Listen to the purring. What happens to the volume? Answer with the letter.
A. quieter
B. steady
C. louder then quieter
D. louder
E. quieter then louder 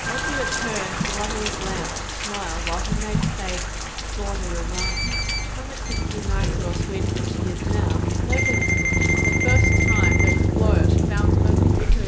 E.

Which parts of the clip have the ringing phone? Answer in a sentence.
You can hear the ringing phone from 0.1 to 2.0 s, from 4.7 to 6.0 s and from 8.3 to 10.3 s.